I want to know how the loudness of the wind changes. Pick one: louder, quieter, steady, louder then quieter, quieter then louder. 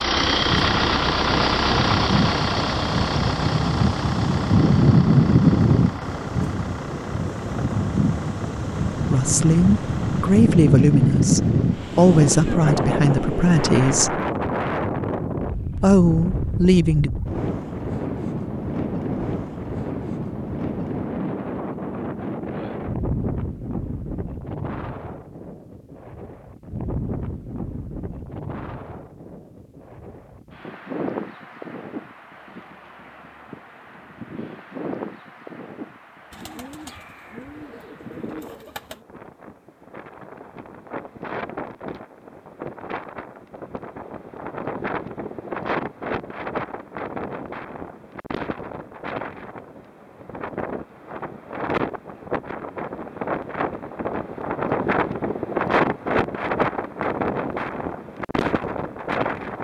quieter then louder.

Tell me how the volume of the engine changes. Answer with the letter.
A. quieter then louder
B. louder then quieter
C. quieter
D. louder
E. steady
C.